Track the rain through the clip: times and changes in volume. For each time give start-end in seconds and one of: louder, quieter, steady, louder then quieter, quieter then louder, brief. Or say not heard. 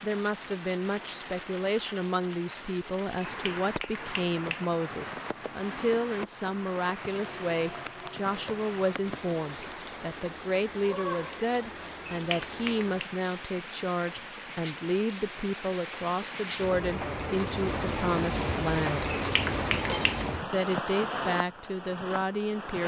0.0-22.8 louder.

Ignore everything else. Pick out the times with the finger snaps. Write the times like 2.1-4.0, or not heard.
3.2-4.7, 12.1-13.1, 19.1-20.2.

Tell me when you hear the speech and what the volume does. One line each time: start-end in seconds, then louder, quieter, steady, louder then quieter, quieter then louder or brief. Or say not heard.
0.0-19.1 steady
20.4-22.8 brief.